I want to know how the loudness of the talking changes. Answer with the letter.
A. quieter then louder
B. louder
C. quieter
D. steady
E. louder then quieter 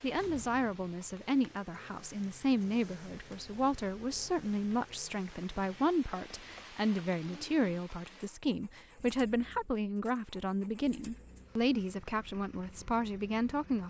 D.